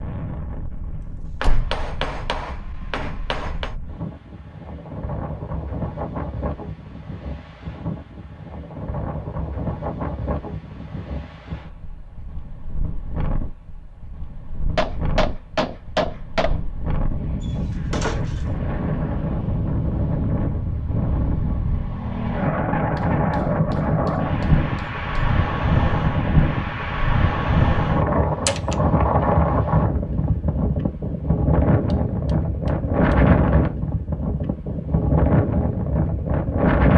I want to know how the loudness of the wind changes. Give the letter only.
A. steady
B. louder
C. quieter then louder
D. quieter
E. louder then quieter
B.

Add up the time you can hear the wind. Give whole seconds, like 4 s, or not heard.
37 s.